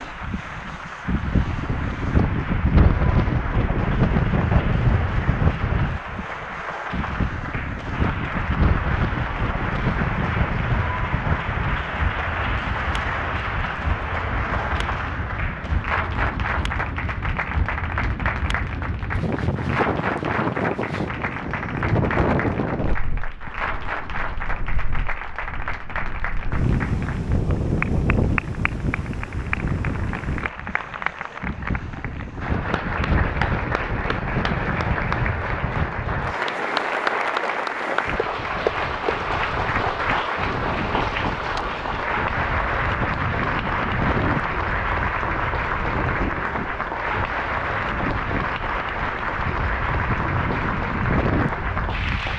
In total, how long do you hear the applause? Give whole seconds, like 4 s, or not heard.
52 s.